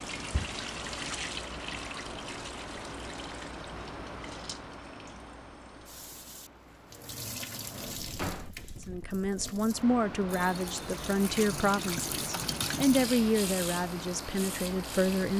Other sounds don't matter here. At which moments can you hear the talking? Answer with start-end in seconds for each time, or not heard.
8.8-15.3.